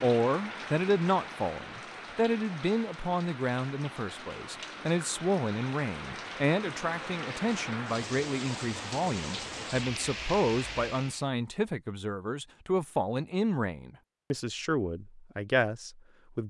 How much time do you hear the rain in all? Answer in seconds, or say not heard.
11 s.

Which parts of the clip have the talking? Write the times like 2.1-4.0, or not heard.
0.0-16.4.